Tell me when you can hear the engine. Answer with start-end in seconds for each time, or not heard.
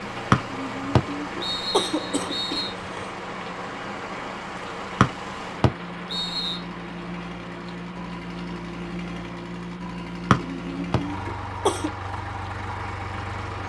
0.0-13.6.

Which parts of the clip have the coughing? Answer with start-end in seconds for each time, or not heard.
0.5-3.1, 10.4-11.9.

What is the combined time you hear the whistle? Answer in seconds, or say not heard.
5 s.